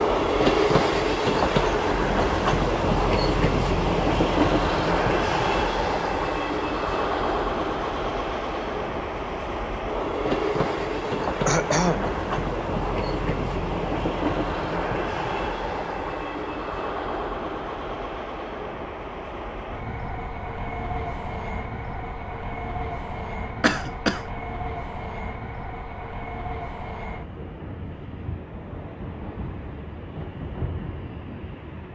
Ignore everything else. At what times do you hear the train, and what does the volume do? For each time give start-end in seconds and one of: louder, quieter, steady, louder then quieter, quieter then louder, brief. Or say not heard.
0.0-31.8 quieter.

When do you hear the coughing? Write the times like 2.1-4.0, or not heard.
11.0-12.2, 23.6-24.2.